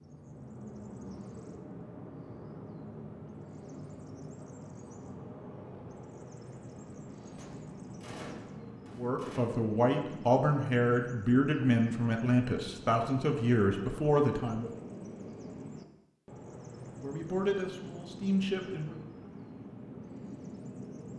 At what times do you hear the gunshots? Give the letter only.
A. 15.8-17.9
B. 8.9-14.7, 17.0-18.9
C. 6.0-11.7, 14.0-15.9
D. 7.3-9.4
D.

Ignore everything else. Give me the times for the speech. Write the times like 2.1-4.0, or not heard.
8.9-14.7, 17.0-18.9.